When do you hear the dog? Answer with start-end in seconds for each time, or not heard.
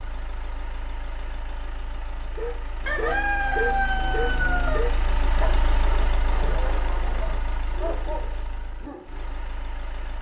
2.4-9.3.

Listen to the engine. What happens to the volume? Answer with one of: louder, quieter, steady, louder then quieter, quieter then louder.
louder then quieter.